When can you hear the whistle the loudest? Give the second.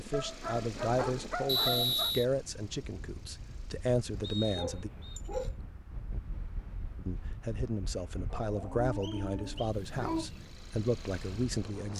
2 s.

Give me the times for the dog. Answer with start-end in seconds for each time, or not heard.
0.1-2.1, 4.1-5.5, 8.3-10.3.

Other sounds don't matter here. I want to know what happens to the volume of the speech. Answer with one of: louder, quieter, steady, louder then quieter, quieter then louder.
steady.